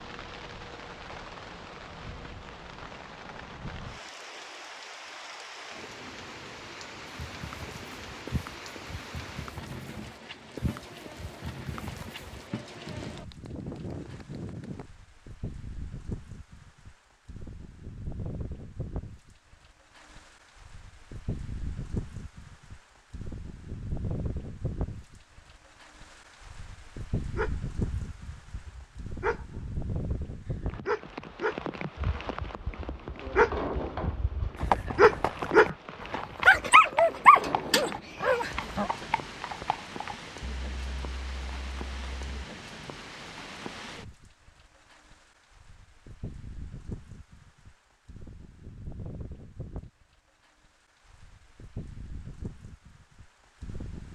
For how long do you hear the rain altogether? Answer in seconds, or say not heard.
54 s.